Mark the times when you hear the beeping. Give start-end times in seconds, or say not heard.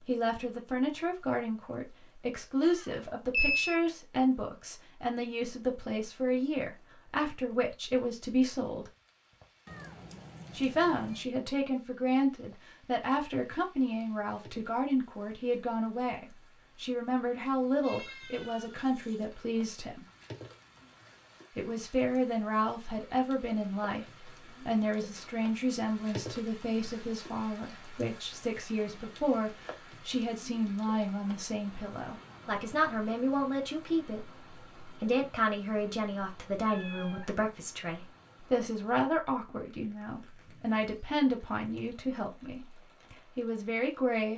2.9-3.8.